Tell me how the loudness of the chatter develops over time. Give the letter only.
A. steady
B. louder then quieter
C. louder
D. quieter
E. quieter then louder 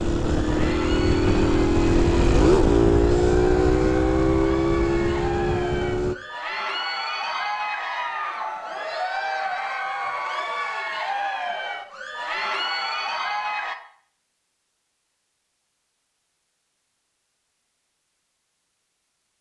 C.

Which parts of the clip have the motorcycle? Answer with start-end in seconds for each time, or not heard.
0.0-6.2.